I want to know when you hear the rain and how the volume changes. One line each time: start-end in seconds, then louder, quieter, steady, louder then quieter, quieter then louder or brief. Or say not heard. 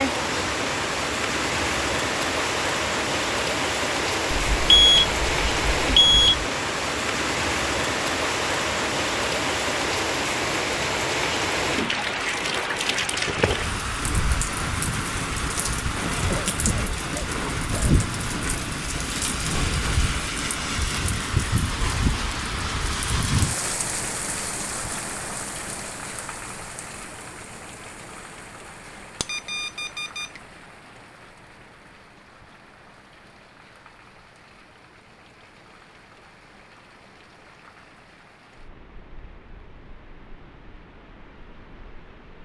0.0-42.4 quieter.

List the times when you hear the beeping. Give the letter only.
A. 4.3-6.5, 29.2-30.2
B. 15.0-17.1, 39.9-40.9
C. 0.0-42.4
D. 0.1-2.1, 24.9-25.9
A.